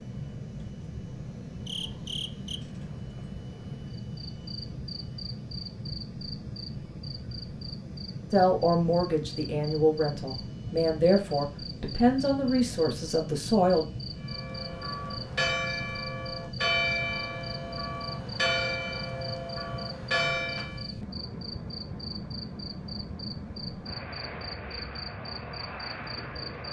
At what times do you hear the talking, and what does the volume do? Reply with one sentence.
You can hear the talking from 8.3 to 13.8 s, at a steady volume.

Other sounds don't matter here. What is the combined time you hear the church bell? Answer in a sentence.
The church bell can be heard for 7 seconds in total.